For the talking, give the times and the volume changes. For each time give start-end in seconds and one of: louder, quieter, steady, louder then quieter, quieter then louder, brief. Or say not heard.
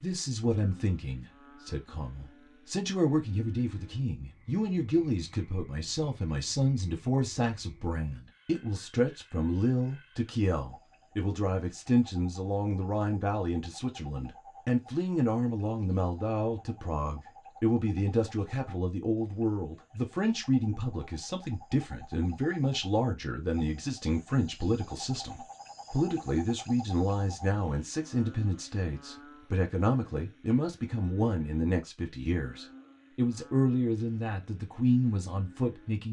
0.0-36.0 steady.